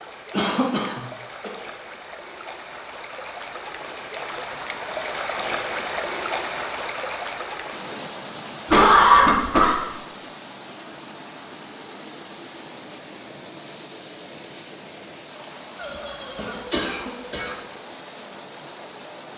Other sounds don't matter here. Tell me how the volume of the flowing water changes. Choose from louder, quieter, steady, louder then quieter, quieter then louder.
louder then quieter.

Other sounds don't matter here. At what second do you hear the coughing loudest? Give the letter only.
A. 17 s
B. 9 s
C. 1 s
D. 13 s
B.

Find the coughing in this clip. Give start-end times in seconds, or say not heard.
0.3-1.5, 8.7-9.8, 15.8-17.6.